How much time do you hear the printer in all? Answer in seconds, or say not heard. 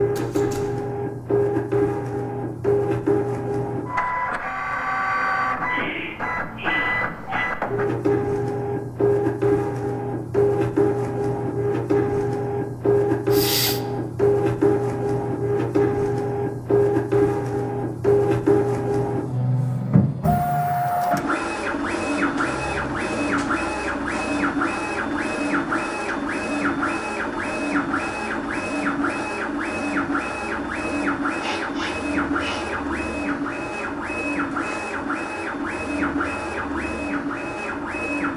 38 s.